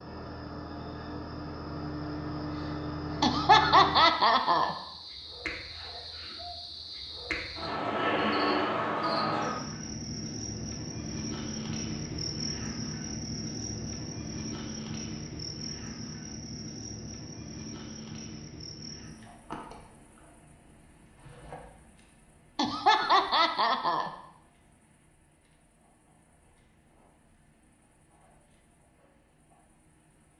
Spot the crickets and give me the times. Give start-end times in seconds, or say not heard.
0.0-30.3.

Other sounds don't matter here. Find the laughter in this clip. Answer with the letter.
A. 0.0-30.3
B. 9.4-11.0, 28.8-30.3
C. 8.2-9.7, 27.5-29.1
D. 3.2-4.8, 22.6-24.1
D.